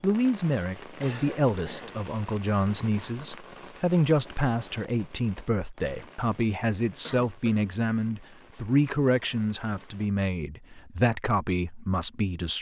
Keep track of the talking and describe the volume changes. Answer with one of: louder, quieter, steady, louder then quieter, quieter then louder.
steady.